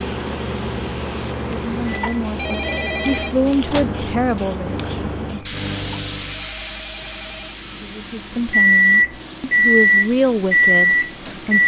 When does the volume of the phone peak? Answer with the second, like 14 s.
3 s.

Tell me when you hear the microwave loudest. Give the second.
9 s.